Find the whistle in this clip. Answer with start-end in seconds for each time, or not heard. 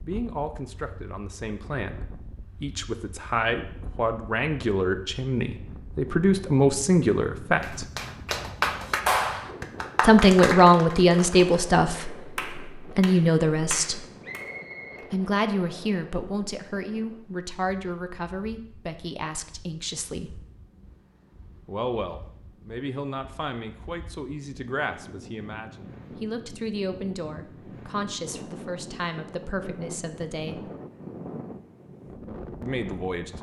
14.2-15.1.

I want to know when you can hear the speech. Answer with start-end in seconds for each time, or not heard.
0.0-7.8, 10.0-14.1, 15.1-20.4, 21.6-30.7, 32.6-33.3.